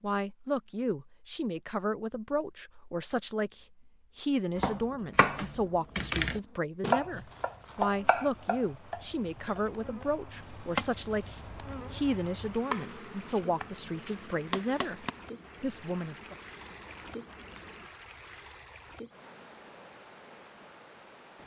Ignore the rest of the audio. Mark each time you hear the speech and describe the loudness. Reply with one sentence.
The speech can be heard from 0.0 to 16.4 s, at a steady volume.